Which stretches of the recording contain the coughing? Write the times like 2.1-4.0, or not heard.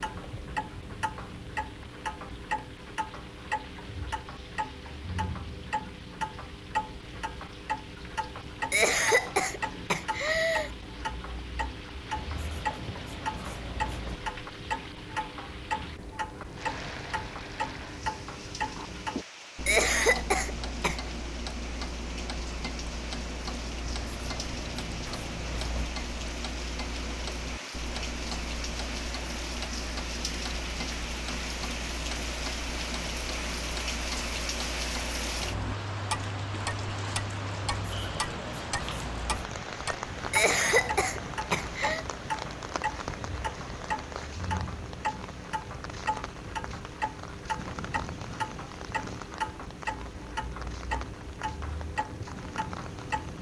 8.7-10.7, 19.6-21.0, 40.3-42.0.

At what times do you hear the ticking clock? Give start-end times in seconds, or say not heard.
0.0-53.3.